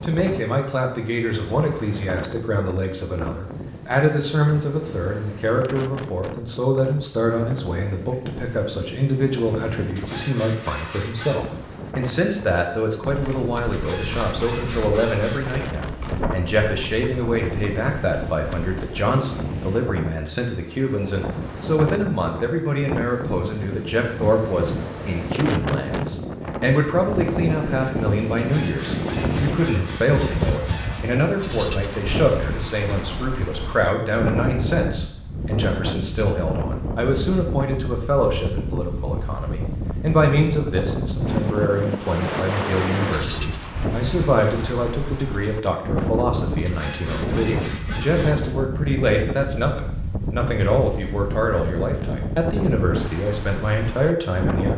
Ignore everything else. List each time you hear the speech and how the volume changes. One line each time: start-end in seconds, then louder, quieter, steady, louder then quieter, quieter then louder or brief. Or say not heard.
0.0-54.7 steady.